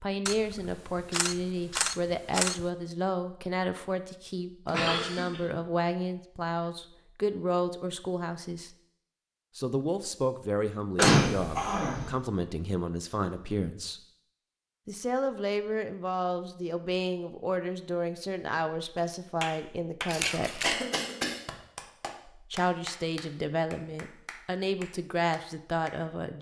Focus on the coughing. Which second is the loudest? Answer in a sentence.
The loudest moment of the coughing is at 11 seconds.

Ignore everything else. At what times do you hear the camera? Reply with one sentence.
You can hear the camera from 0.2 to 2.7 s, from 11.0 to 11.8 s and from 20.1 to 20.8 s.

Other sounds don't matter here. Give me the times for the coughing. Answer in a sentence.
You can hear the coughing from 4.7 to 5.5 s, from 10.9 to 12.1 s and from 20.6 to 21.4 s.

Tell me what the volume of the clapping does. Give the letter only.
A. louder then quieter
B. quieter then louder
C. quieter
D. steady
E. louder
C.